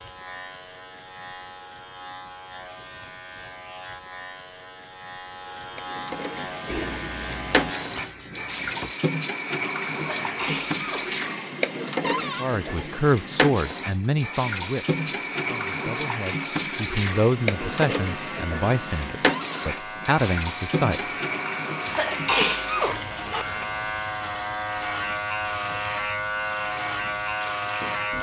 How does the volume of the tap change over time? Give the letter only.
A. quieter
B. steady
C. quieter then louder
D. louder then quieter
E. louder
A.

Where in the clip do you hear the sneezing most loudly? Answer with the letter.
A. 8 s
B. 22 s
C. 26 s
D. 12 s
B.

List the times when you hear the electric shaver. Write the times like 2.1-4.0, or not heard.
0.0-9.1, 17.4-28.1.